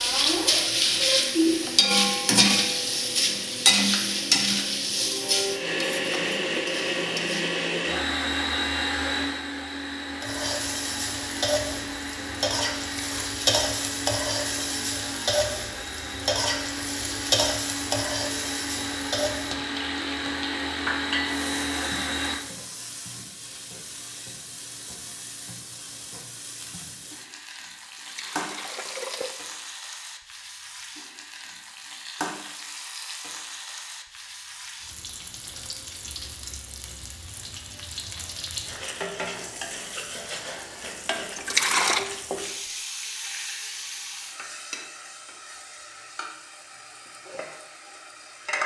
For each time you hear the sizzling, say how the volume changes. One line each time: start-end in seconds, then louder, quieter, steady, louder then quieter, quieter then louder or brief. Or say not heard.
0.0-7.6 quieter
10.2-48.6 quieter.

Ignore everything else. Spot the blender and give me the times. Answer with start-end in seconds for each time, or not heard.
0.0-22.4.